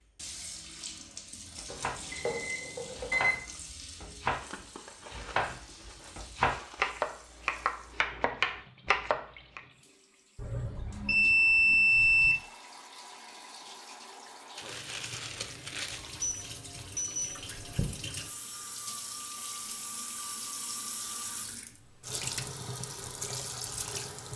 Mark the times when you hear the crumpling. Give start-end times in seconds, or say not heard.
4.2-7.0, 14.6-16.1.